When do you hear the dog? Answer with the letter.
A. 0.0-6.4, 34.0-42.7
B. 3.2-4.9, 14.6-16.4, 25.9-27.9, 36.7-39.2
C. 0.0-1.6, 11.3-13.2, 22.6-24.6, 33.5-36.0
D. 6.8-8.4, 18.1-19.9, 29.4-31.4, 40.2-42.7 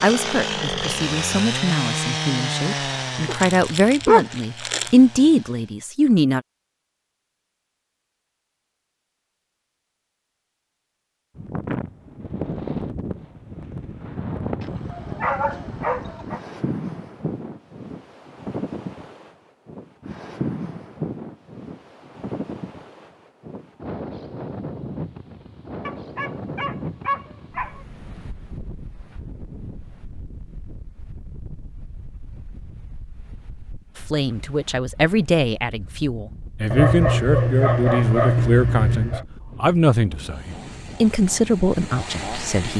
B.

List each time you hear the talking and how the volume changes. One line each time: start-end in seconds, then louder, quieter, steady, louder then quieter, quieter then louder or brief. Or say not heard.
0.0-6.4 louder
34.0-42.7 steady.